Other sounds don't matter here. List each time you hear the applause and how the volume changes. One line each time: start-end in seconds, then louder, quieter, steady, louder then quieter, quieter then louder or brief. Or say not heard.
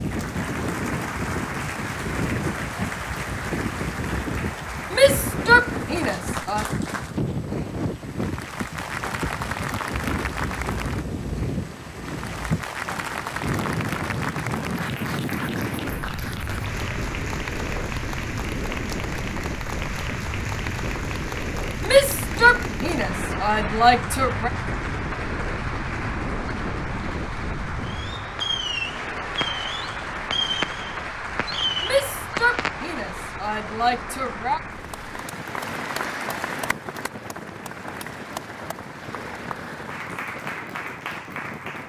0.0-41.8 steady.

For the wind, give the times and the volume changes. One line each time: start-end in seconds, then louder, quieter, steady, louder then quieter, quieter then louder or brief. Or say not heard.
0.0-41.8 quieter.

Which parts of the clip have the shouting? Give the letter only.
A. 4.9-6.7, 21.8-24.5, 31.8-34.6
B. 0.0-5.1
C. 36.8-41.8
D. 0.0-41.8
A.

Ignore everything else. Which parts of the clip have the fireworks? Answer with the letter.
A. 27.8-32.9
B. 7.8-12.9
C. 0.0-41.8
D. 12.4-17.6
A.